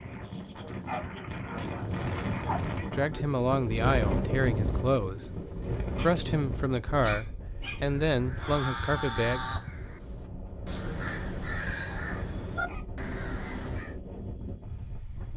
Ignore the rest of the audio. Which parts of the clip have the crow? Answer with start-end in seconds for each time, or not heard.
7.8-13.9.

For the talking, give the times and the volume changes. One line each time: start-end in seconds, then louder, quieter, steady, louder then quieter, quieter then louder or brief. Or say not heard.
2.9-9.5 steady.